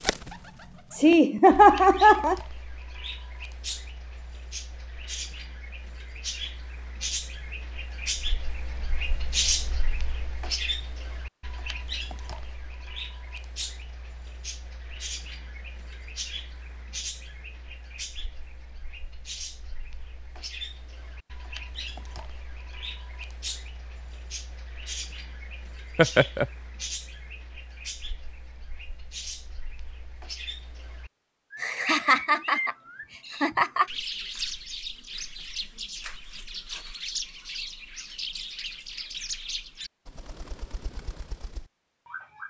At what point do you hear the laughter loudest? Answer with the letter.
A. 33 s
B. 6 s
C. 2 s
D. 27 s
C.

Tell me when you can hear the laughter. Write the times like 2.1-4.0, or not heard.
0.9-2.4, 25.9-26.4, 31.6-33.9.